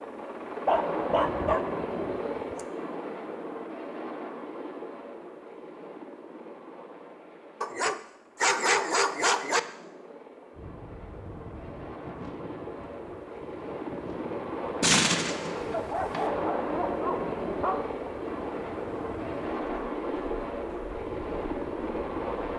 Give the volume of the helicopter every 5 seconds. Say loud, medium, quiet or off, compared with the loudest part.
loud, quiet, medium, loud, loud.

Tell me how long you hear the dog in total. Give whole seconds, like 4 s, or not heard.
6 s.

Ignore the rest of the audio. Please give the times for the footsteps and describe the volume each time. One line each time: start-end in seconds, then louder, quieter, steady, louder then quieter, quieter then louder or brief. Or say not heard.
not heard.